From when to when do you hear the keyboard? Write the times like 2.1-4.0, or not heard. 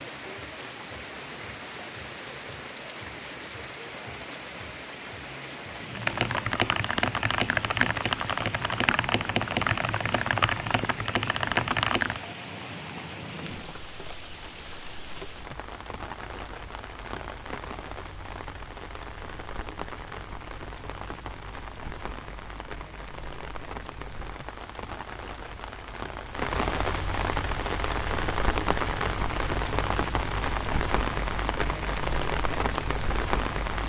6.0-12.2.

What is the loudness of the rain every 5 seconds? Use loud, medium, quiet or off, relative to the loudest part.
medium, medium, medium, medium, medium, loud, loud.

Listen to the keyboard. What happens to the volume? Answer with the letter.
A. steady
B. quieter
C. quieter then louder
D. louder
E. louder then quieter
A.